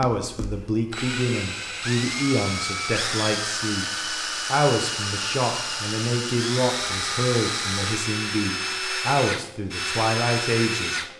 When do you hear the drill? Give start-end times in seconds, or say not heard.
0.0-11.1.